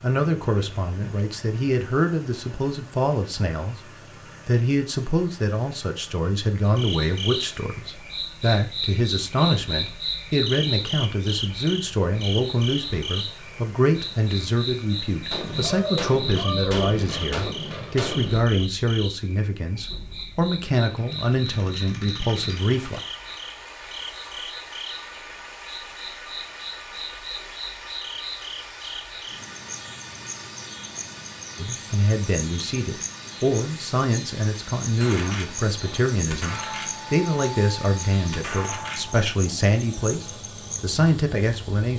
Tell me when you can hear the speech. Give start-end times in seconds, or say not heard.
0.0-23.0, 31.6-41.9.